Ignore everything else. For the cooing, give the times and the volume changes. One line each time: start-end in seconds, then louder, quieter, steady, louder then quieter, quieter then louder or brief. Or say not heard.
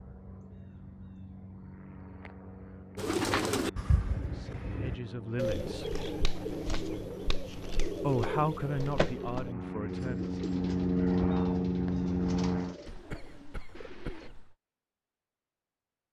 3.0-14.3 quieter.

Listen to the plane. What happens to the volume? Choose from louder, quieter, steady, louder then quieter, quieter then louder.
louder.